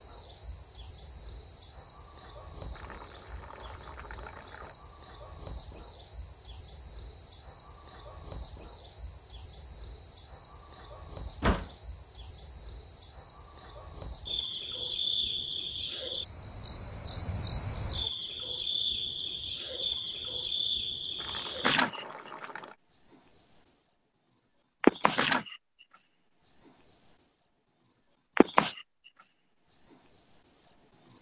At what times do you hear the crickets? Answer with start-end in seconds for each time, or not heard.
0.0-31.1.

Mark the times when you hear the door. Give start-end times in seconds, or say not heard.
11.2-11.7.